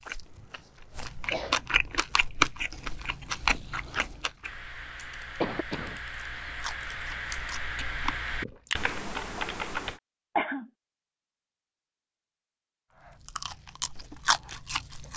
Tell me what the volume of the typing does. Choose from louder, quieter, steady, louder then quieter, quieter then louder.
louder.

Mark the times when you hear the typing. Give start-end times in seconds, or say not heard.
4.5-10.0.